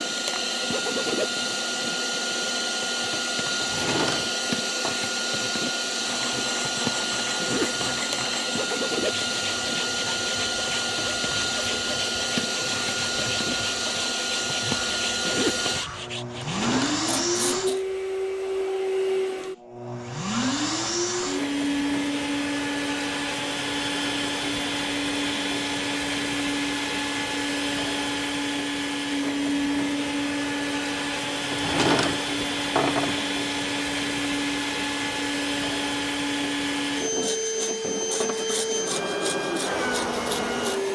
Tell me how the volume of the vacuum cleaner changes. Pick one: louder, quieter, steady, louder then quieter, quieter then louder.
steady.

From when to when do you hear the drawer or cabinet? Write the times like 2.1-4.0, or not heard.
3.6-5.0, 16.3-17.1, 31.5-33.3.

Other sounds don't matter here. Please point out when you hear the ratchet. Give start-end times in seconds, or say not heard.
not heard.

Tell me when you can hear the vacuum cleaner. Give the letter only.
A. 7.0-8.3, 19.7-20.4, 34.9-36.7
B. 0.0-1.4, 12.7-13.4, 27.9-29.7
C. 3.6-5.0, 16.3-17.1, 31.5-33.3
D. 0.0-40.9
D.